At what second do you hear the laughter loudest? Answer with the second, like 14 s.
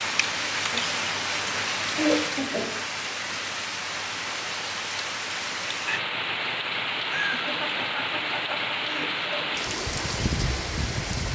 2 s.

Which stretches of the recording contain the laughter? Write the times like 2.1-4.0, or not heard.
0.7-2.7, 7.0-9.6.